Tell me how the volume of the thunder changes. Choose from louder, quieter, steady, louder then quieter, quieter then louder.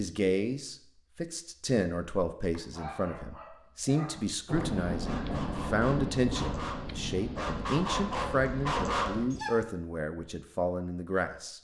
quieter.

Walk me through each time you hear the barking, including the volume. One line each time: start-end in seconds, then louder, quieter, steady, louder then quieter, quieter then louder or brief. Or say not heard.
2.5-9.5 louder.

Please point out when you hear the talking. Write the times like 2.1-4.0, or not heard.
0.0-11.5.